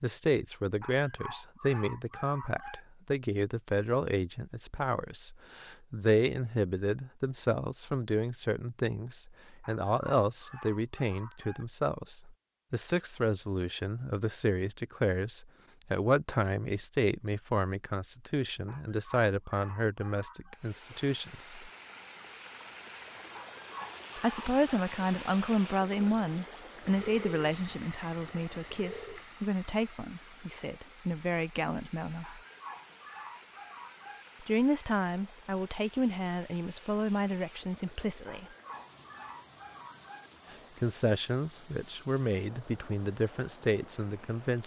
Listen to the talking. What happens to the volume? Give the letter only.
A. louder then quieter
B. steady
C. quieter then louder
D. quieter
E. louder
B.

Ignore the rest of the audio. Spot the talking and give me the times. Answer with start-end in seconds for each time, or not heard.
0.0-21.7, 24.1-32.4, 34.4-38.5, 40.5-44.6.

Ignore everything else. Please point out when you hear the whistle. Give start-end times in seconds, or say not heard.
not heard.